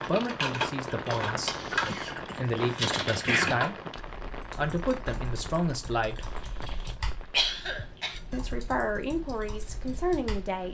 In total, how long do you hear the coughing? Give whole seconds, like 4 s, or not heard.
4 s.